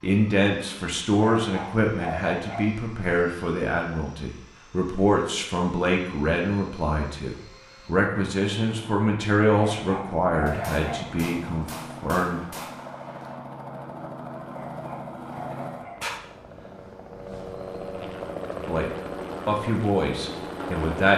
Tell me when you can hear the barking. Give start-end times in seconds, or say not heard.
1.2-2.8, 9.6-11.1, 14.5-16.1.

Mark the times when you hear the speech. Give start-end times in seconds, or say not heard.
0.0-12.4, 18.6-21.1.